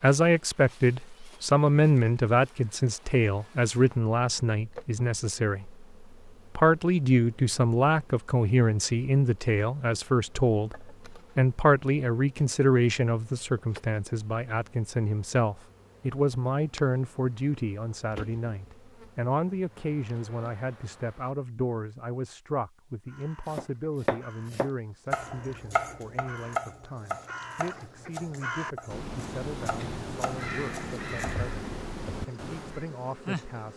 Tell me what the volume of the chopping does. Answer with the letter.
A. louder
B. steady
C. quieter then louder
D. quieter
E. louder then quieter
D.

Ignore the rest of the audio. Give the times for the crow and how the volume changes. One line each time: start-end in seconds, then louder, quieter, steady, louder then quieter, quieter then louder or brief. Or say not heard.
23.1-32.9 louder.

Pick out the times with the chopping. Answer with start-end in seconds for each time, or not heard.
23.5-31.4.